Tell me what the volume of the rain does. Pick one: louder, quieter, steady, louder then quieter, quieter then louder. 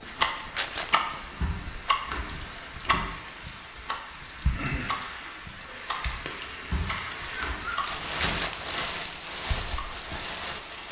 louder.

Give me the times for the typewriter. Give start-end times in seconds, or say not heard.
1.3-3.1, 6.6-8.4.